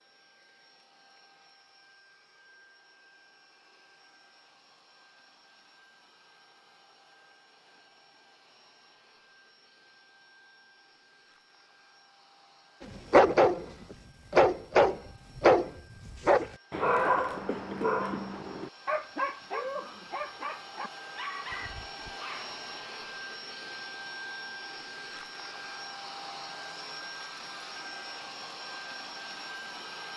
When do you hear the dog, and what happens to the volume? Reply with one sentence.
The dog can be heard from 12.8 to 22.6 s, getting quieter.